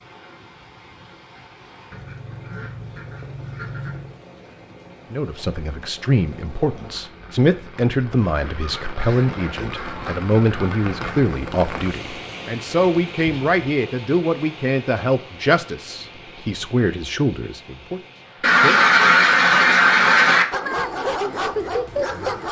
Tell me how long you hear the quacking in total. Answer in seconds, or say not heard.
7 s.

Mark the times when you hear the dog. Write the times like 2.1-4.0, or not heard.
20.5-22.4.